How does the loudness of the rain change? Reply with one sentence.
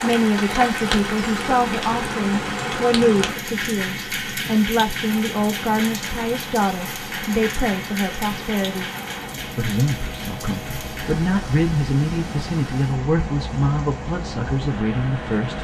The volume of the rain goes down.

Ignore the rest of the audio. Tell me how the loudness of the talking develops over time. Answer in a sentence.
The volume of the talking stays about the same.